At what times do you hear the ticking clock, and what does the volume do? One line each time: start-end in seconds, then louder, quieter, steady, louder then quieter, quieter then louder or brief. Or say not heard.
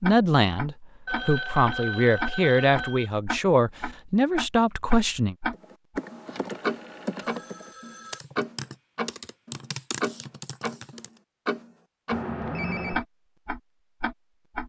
0.0-12.2 steady
12.9-14.6 brief.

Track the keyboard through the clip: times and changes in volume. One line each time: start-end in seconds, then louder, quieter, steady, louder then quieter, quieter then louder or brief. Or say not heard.
5.5-11.1 steady.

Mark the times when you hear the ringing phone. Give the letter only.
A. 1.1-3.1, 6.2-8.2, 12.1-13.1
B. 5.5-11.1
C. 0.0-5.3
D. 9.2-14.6
A.